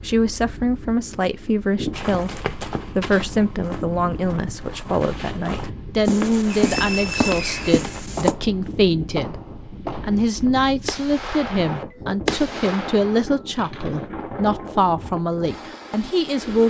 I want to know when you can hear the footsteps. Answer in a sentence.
The footsteps can be heard from 1.9 to 8.3 s.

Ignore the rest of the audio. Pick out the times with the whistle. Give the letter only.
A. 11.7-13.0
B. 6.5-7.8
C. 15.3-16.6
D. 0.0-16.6
B.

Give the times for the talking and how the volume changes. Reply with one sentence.
The talking can be heard from 0.0 to 16.6 s, at a steady volume.